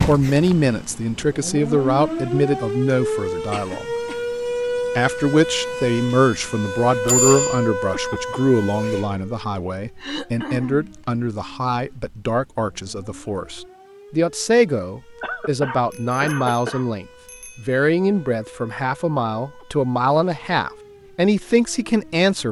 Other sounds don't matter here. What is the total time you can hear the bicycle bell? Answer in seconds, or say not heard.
2 s.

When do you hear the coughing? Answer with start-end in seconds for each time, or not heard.
3.5-4.2, 10.0-10.9, 15.2-16.9.